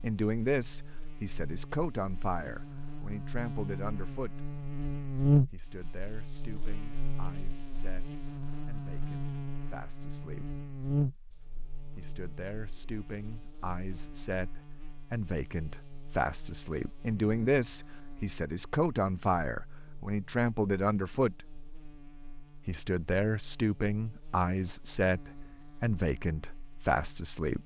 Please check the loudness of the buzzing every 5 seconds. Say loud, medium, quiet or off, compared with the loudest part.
medium, loud, medium, quiet, quiet, quiet.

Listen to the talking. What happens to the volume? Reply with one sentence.
The loudness of the talking goes down, then up.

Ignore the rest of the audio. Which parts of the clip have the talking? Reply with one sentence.
You can hear the talking from 0.0 to 4.4 s, from 5.5 to 10.5 s, from 11.9 to 21.4 s and from 22.6 to 27.6 s.